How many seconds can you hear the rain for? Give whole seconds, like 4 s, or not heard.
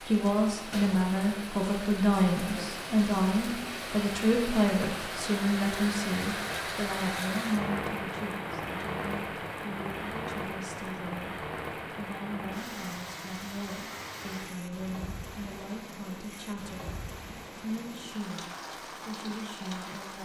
20 s.